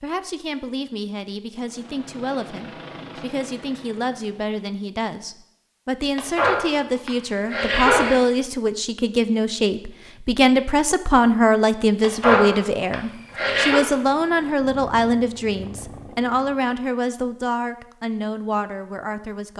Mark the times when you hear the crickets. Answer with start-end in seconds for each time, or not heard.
not heard.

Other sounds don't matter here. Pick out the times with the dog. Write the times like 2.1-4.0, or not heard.
6.2-8.2, 12.0-13.8.